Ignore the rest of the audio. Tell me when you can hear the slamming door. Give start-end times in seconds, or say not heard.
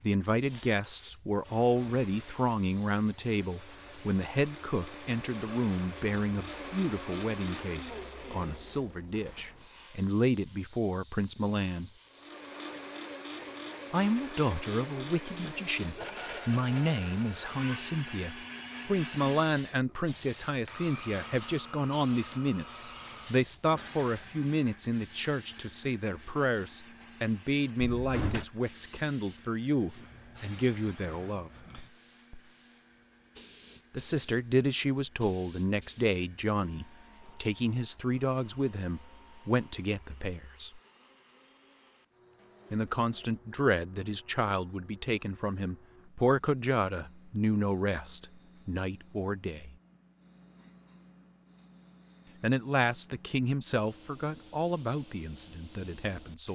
27.8-28.4.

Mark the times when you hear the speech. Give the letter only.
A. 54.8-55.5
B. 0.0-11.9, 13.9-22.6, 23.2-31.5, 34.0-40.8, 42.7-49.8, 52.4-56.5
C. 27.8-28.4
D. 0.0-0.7
B.